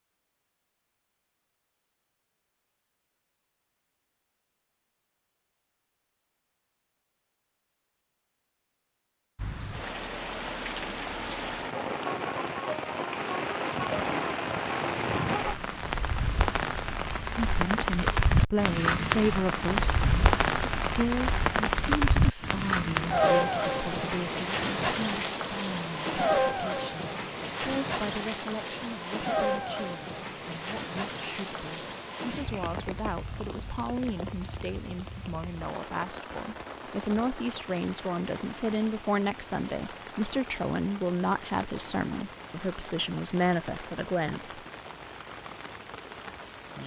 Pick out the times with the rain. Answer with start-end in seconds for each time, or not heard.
9.3-46.8.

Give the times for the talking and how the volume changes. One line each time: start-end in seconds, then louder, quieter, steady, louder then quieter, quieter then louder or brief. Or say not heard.
17.4-44.6 quieter then louder.